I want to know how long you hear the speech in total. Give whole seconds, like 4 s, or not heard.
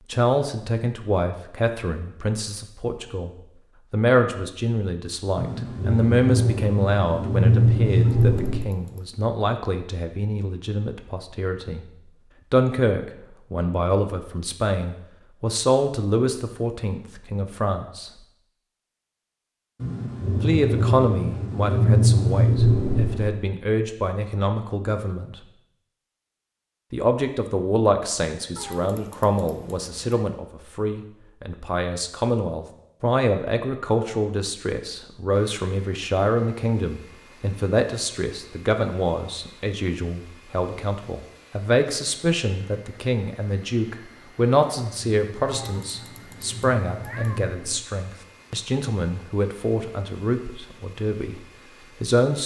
48 s.